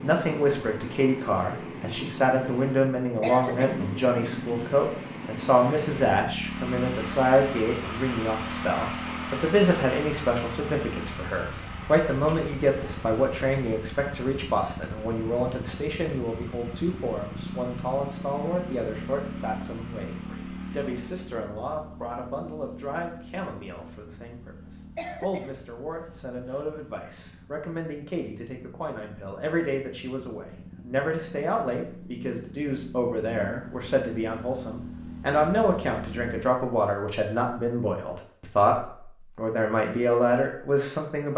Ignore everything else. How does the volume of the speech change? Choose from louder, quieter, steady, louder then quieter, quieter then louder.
quieter then louder.